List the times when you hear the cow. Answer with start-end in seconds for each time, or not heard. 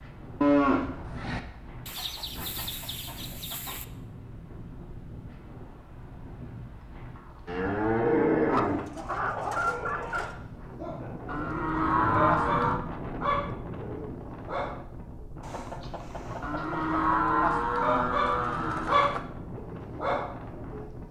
0.4-1.4, 7.5-8.9, 11.2-12.8, 16.4-19.2.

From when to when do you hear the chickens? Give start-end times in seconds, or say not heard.
1.9-3.9, 8.4-10.3, 15.4-17.2.